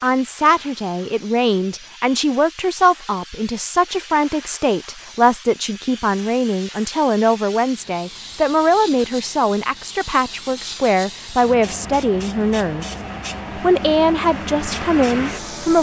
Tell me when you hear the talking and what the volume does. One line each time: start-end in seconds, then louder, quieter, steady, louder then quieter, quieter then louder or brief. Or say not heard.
0.0-12.8 steady
13.6-15.7 brief.